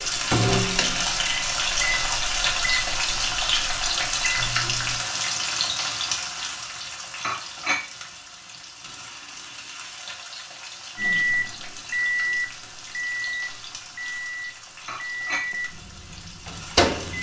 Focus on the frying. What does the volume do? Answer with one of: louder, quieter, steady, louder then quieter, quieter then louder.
quieter.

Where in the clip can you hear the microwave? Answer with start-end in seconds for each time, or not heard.
0.0-5.0, 10.9-17.1.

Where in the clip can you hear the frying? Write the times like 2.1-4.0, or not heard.
0.0-17.1.